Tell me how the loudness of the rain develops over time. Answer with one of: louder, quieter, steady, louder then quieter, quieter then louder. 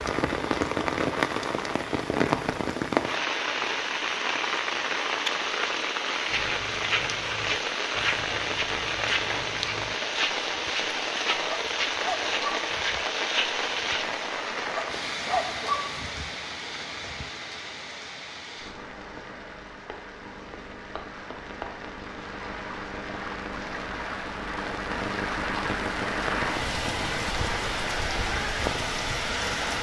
quieter then louder.